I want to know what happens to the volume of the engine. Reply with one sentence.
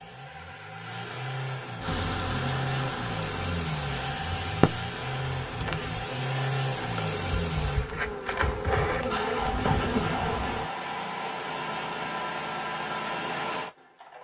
The volume of the engine stays about the same.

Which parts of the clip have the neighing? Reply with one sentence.
The neighing can be heard from 0.1 to 1.9 s.